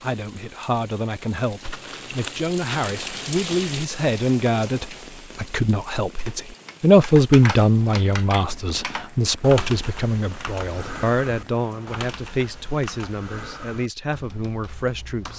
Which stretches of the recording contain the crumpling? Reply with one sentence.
You can hear the crumpling from 1.6 to 3.3 s.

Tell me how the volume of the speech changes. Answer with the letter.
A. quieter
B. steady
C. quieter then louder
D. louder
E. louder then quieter
E.